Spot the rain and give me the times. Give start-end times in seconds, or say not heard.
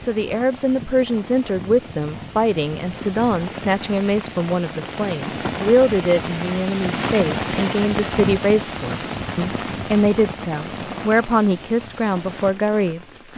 0.0-13.3.